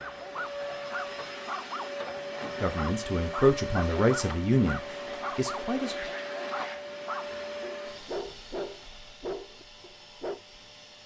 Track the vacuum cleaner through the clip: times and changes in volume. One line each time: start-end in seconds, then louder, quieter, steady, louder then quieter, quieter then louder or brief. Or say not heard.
0.0-11.0 quieter.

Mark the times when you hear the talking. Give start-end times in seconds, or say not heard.
2.4-6.1.